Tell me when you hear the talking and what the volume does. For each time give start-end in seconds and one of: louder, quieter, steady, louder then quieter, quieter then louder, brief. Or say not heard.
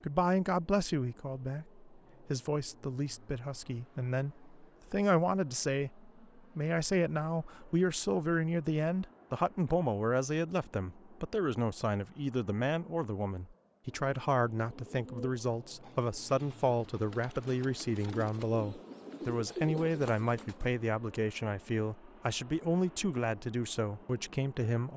0.0-24.9 steady.